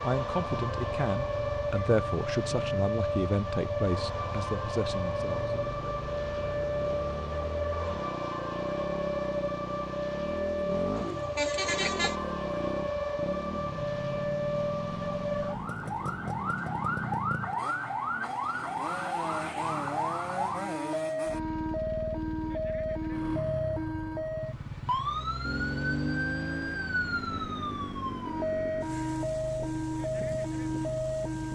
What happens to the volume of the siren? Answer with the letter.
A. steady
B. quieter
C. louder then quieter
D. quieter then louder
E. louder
A.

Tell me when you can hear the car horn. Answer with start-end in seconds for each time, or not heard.
10.9-12.2.